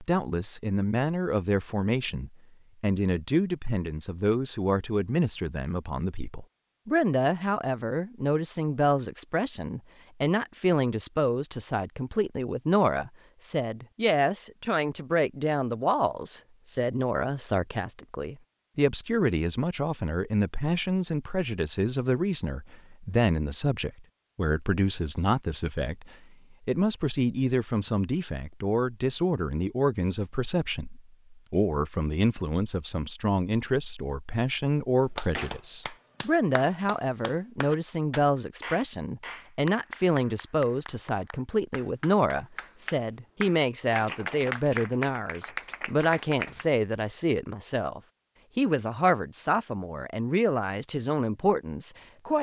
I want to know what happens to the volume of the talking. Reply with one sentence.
The volume of the talking stays about the same.